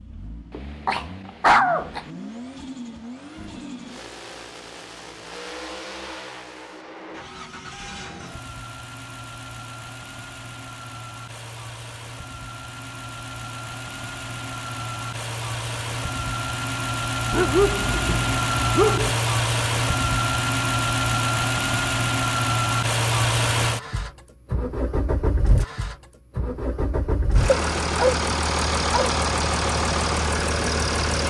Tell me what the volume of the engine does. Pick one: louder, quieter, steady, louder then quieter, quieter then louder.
louder.